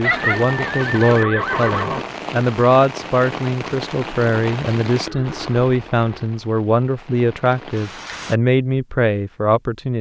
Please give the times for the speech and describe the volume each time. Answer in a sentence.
You can hear the speech from 0.0 to 9.9 s, at a steady volume.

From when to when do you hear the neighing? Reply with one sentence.
The neighing can be heard from 0.0 to 2.0 s and from 5.0 to 6.2 s.